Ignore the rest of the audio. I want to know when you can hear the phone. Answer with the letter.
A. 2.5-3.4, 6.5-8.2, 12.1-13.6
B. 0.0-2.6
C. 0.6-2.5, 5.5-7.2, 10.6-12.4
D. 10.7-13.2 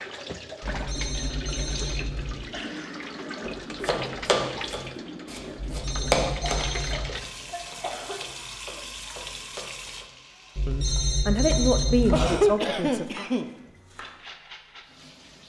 C.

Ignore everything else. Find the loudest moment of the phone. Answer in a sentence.
The volume of the phone peaks at 12 seconds.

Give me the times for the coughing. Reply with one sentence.
The coughing can be heard from 2.5 to 3.4 s, from 6.5 to 8.2 s and from 12.1 to 13.6 s.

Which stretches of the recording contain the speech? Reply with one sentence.
You can hear the speech from 10.7 to 13.2 s.